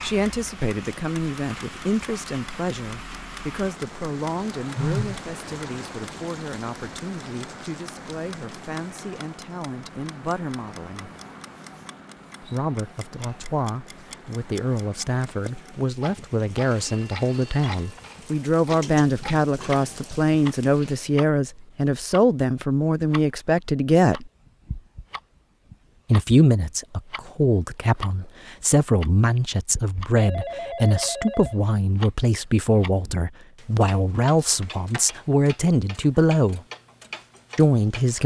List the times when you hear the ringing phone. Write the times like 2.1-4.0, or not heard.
4.8-5.2, 16.6-18.1, 30.1-31.6.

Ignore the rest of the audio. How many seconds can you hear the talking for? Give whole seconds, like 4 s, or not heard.
34 s.